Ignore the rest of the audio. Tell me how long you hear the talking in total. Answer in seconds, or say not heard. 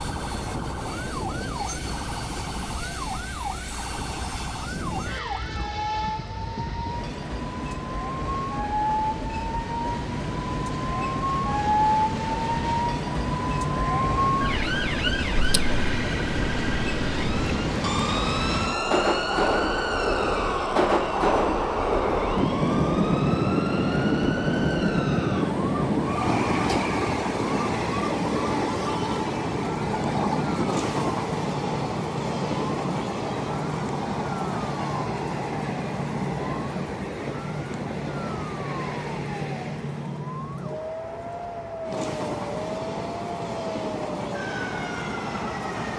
not heard.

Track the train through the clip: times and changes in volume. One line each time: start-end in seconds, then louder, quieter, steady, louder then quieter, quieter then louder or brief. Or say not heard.
0.0-45.9 louder then quieter.